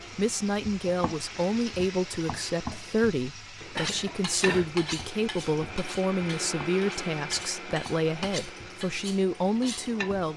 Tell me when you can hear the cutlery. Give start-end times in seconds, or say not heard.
3.8-9.9.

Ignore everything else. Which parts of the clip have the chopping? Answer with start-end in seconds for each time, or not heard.
not heard.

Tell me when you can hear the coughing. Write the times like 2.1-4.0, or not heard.
3.8-4.7.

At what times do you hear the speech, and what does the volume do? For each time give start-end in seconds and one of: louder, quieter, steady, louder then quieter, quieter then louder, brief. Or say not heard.
0.1-10.3 steady.